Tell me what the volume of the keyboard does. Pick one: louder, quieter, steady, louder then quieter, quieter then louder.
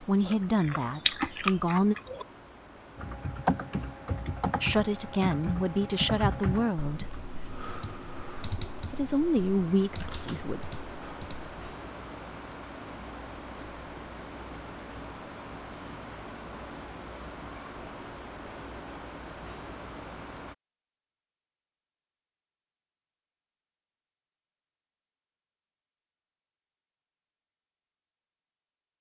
quieter.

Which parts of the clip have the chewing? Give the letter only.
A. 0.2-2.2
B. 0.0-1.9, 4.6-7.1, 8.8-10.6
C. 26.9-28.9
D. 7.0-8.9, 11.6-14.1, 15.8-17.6
A.